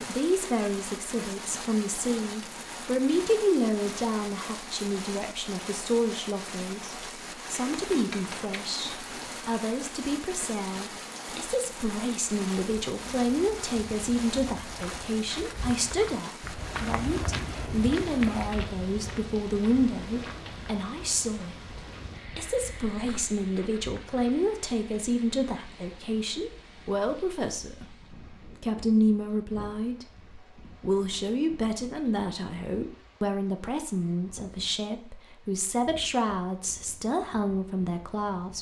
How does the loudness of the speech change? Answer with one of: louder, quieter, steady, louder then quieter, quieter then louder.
steady.